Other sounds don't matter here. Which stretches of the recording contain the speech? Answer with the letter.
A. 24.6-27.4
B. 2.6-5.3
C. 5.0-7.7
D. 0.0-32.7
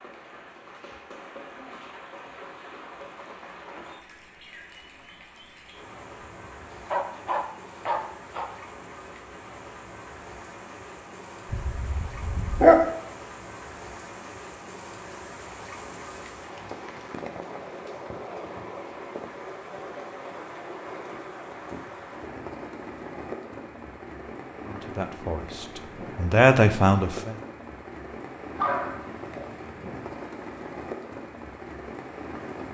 A.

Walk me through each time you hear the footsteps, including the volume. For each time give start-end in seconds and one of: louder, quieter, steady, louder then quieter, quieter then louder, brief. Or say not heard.
not heard.